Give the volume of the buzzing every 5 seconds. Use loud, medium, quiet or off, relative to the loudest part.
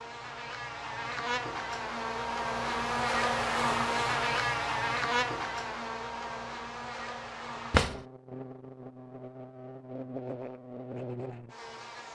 loud, medium, medium.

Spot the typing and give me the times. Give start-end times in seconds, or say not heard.
not heard.